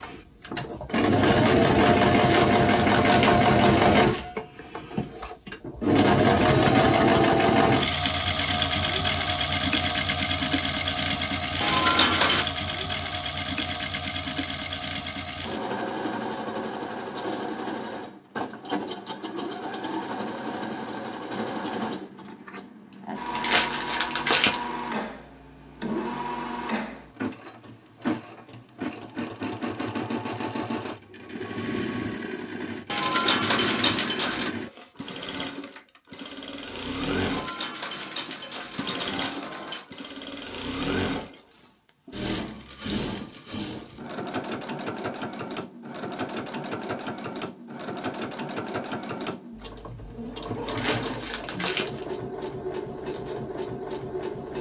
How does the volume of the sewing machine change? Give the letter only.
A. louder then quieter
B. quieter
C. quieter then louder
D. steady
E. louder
B.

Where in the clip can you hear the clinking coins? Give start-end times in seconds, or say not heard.
11.6-12.4, 32.9-34.5, 37.2-39.9.